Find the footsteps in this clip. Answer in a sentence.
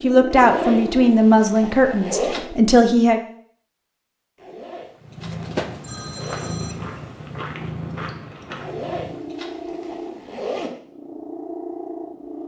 You can hear the footsteps from 6.1 to 8.7 s.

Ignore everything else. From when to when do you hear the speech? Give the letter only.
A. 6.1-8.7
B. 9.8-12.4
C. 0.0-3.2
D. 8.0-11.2
C.